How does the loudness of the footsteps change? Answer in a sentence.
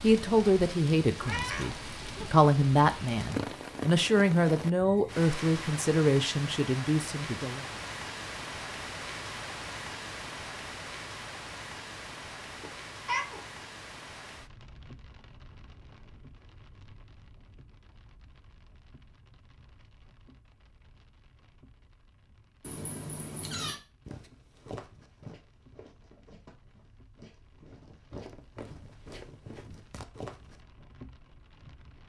The loudness of the footsteps goes down, then up.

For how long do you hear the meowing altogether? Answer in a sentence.
You can hear the meowing for 3 seconds altogether.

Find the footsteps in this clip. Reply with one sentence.
You can hear the footsteps from 24.1 to 30.6 s.